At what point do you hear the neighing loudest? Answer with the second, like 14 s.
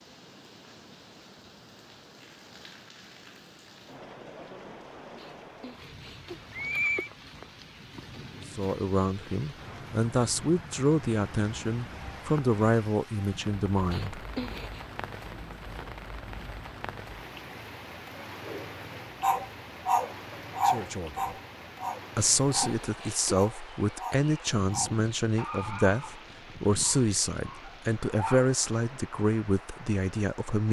7 s.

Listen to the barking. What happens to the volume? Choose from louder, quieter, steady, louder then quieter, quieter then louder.
quieter.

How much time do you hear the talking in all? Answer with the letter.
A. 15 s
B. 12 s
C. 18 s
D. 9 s
A.